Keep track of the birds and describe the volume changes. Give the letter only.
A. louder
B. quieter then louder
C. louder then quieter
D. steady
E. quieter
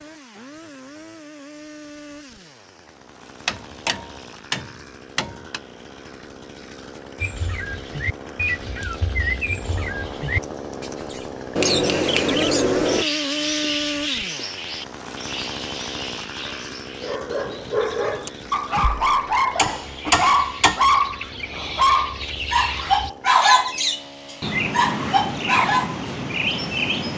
B.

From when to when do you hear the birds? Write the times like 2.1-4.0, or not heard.
7.2-27.1.